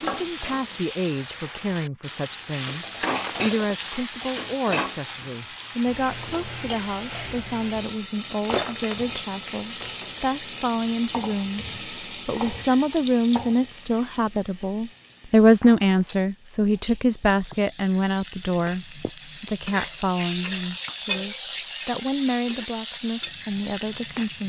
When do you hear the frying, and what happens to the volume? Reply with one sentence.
The frying can be heard from 0.0 to 24.4 s, getting quieter then louder.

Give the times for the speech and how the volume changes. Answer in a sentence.
You can hear the speech from 0.1 to 24.4 s, getting louder then quieter.